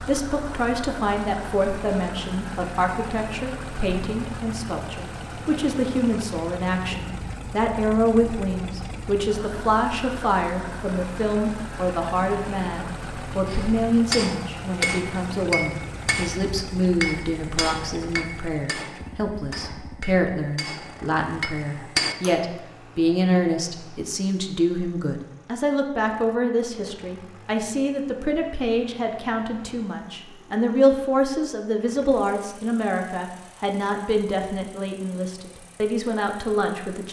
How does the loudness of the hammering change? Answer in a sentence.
The loudness of the hammering goes down, then up.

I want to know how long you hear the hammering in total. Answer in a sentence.
The hammering can be heard for 9 seconds in total.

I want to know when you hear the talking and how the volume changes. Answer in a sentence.
You can hear the talking from 0.0 to 37.0 s, at a steady volume.